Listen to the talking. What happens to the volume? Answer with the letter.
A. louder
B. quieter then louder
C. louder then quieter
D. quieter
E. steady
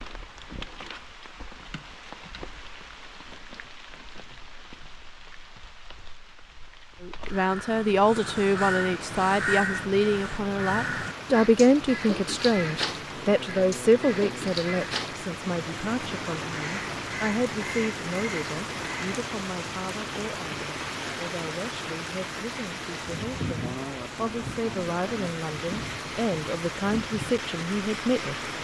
B.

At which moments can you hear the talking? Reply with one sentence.
You can hear the talking from 7.0 to 28.4 s.